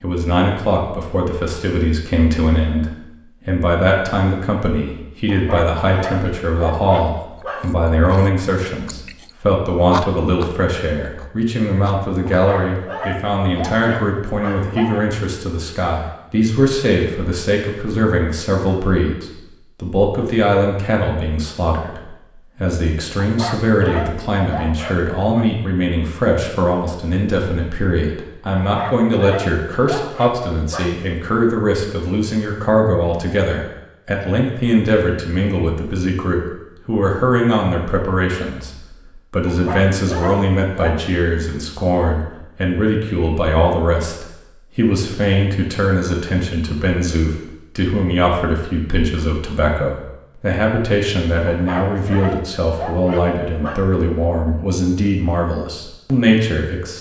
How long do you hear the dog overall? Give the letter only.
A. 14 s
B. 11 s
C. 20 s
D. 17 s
A.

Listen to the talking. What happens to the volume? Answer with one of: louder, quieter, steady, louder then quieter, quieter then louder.
steady.